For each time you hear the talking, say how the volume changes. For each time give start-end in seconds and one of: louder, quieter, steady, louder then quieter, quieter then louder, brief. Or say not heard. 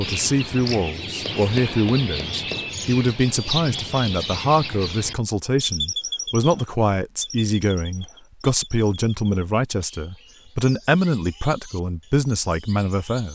0.0-13.3 steady.